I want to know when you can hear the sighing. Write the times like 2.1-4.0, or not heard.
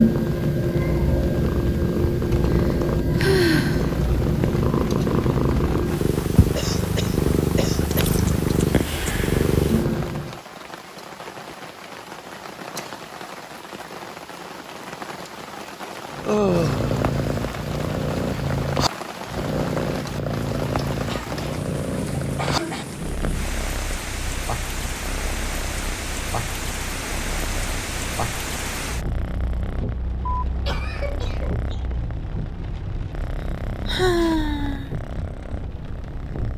2.5-4.0, 16.2-16.9, 33.6-34.9.